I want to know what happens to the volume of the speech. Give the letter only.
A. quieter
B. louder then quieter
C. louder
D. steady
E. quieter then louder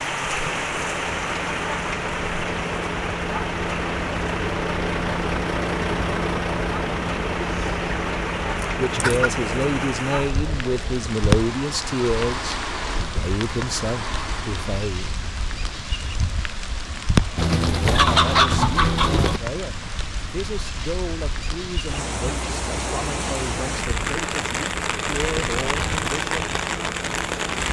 A.